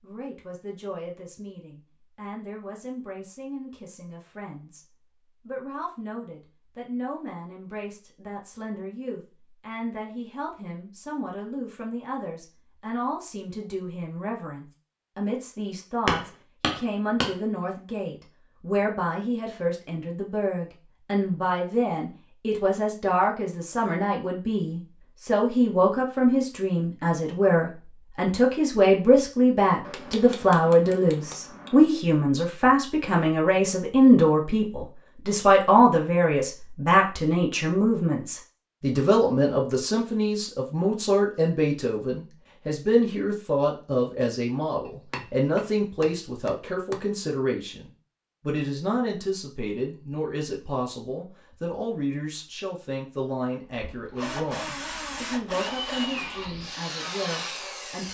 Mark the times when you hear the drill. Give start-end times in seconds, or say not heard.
53.6-58.0.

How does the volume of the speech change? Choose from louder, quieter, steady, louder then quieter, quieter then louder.
louder then quieter.